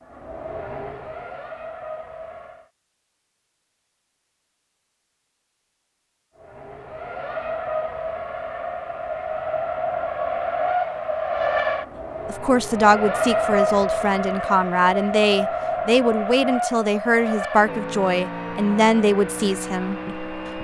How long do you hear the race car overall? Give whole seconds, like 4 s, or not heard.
17 s.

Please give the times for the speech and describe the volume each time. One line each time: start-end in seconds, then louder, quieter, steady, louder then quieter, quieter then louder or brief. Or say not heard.
12.2-20.5 steady.